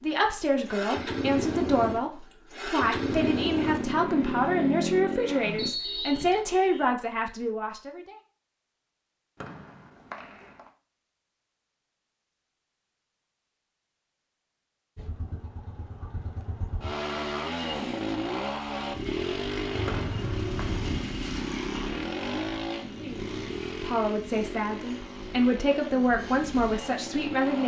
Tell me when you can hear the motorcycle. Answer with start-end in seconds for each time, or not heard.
0.0-5.7, 14.9-27.6.